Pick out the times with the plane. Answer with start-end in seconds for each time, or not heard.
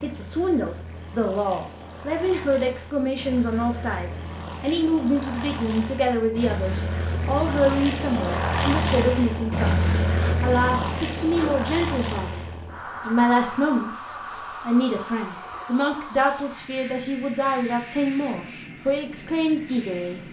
0.0-20.2.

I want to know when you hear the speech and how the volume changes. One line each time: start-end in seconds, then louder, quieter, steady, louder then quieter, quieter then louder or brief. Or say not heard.
0.0-12.4 steady
13.1-20.2 steady.